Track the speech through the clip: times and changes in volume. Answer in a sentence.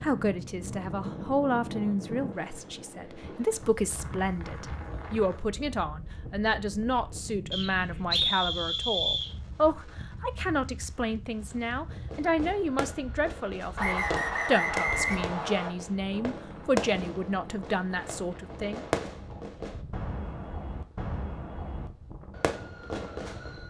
The speech can be heard from 0.0 to 18.9 s, at a steady volume.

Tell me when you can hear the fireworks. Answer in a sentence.
You can hear the fireworks from 11.9 to 23.6 s.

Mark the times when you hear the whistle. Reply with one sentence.
The whistle can be heard from 7.5 to 9.3 s and from 13.8 to 15.7 s.